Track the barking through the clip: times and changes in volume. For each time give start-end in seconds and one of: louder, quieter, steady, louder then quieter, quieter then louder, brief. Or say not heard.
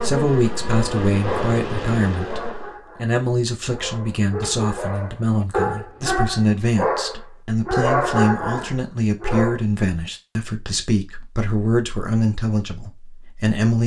1.2-9.6 louder.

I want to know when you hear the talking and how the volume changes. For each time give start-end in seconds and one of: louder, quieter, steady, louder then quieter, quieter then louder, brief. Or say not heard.
0.0-13.8 steady.